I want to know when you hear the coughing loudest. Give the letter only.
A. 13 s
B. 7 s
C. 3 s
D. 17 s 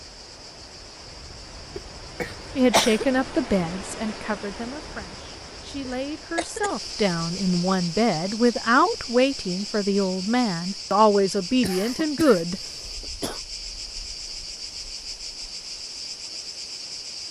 C.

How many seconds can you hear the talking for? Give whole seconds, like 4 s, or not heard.
10 s.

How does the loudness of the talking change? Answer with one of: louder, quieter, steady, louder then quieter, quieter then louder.
quieter then louder.